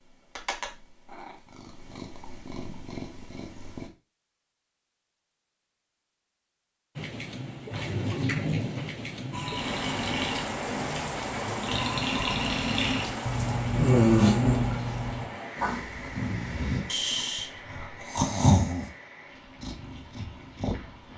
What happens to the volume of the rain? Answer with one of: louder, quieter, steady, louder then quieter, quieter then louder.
quieter.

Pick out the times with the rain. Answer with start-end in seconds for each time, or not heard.
7.0-21.1.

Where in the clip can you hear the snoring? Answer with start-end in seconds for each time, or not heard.
9.3-18.9.